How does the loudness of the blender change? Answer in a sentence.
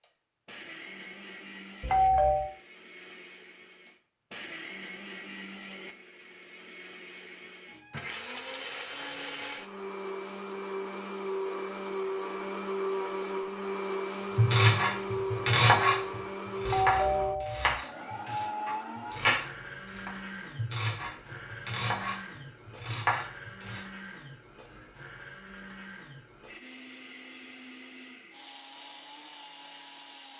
The loudness of the blender goes up, then down.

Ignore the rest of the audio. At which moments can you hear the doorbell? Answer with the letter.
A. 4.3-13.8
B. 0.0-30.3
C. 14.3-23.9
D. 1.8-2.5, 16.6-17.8
D.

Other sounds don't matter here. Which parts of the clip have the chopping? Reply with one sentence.
You can hear the chopping from 14.3 to 23.9 s.